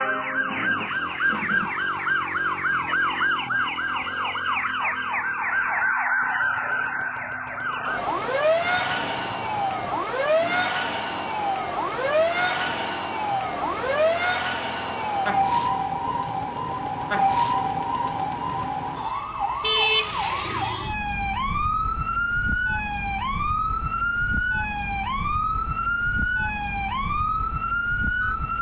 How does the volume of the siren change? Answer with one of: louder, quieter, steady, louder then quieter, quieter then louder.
steady.